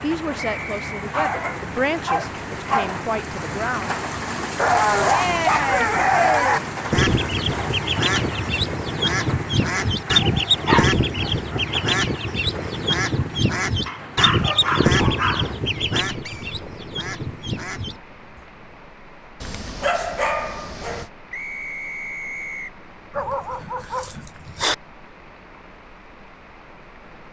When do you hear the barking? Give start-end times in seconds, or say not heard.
1.1-3.0, 4.5-6.6, 10.3-11.7, 13.8-15.5, 19.4-21.1, 23.1-24.8.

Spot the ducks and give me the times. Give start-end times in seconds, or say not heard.
6.9-18.4.